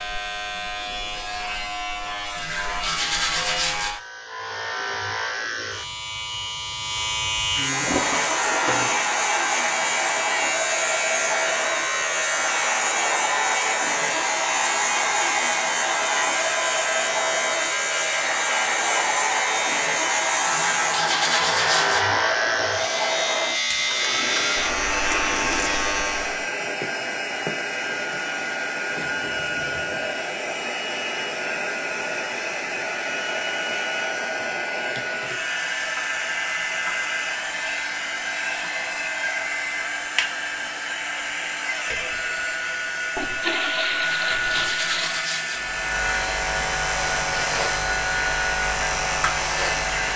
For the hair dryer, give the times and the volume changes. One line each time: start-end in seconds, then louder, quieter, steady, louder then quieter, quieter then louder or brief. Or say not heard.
7.8-50.1 steady.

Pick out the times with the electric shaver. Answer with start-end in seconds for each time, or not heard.
0.0-26.5, 45.5-50.1.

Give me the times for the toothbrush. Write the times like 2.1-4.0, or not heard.
2.4-3.9, 20.4-22.0, 44.0-45.6.